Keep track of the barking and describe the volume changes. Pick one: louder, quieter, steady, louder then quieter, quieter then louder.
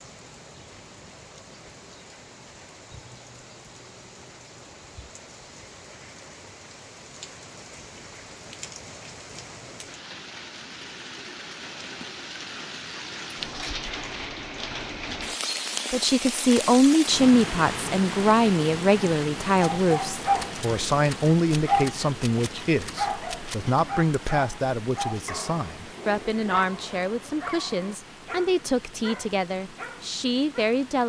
quieter.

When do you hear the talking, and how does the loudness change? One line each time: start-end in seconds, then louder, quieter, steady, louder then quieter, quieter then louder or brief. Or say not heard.
15.9-31.0 quieter.